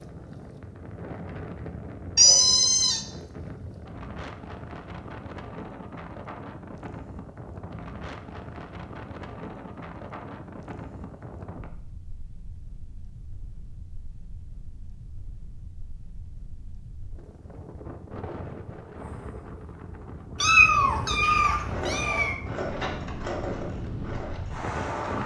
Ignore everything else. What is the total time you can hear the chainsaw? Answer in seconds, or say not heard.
4 s.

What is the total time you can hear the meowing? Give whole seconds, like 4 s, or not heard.
3 s.